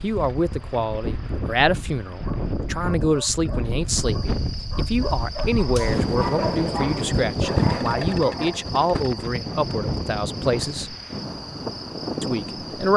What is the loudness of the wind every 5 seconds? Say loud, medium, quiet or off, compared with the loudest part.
medium, loud, medium.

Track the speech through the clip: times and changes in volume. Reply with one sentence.
You can hear the speech from 0.0 to 10.9 s, at a steady volume; and briefly from 12.2 to 12.9 s.